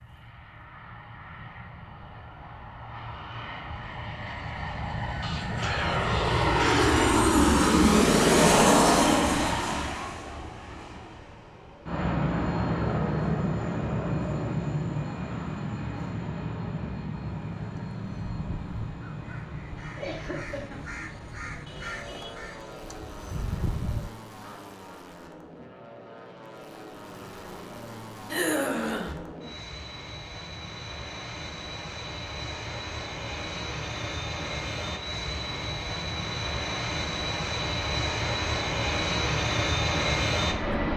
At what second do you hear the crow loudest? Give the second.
24 s.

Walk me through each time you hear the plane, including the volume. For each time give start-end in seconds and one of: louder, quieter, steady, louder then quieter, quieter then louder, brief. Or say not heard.
0.0-40.9 quieter then louder.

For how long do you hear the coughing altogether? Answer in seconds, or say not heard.
4 s.